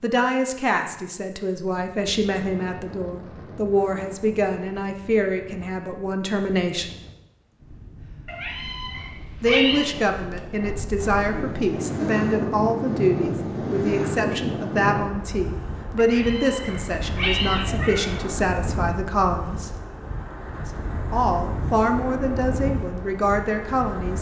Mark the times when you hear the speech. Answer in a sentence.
You can hear the speech from 0.0 to 6.9 s, from 9.4 to 19.7 s and from 20.6 to 24.1 s.